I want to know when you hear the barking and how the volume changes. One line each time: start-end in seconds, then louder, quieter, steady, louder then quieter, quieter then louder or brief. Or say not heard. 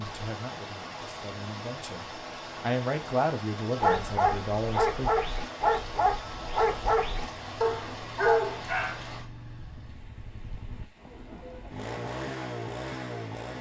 3.8-8.9 steady.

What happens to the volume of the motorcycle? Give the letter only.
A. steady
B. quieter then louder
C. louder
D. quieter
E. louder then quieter
C.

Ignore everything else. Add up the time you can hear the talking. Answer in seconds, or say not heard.
5 s.